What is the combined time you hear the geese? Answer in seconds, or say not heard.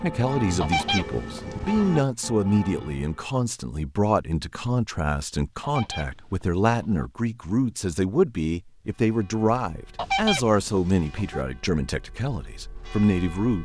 4 s.